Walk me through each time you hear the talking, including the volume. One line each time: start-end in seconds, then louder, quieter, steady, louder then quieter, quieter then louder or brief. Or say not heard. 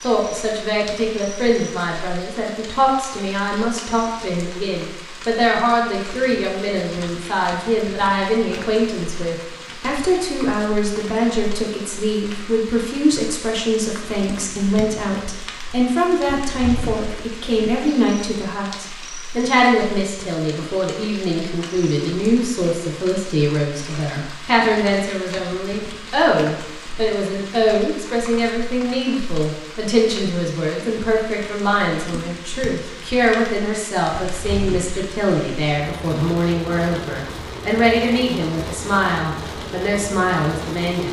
0.0-41.0 steady.